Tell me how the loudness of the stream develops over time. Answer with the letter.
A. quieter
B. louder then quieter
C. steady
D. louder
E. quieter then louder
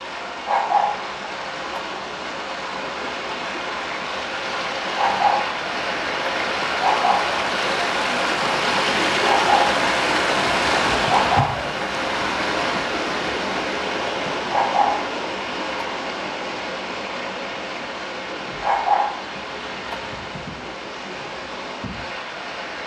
B.